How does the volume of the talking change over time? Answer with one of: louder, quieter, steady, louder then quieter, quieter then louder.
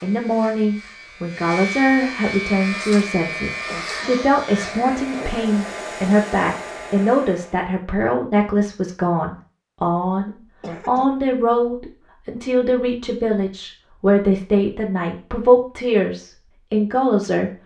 steady.